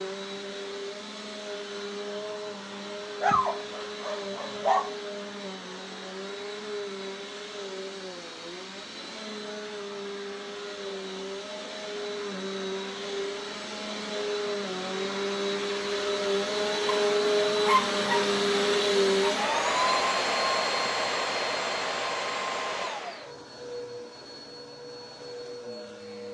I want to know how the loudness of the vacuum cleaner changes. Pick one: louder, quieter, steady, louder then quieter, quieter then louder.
louder then quieter.